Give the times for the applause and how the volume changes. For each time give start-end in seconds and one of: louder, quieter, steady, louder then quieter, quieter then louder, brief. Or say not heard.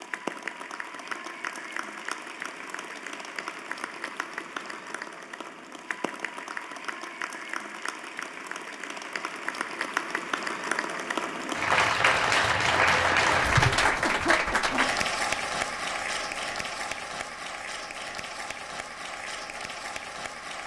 0.0-20.6 louder then quieter.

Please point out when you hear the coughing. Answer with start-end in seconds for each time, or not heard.
14.0-15.1.